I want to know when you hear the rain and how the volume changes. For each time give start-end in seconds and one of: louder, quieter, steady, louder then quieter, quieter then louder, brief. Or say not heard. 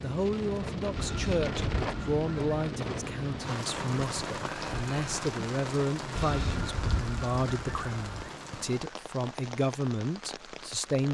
0.0-11.1 quieter.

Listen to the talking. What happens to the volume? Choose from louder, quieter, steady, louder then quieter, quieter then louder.
steady.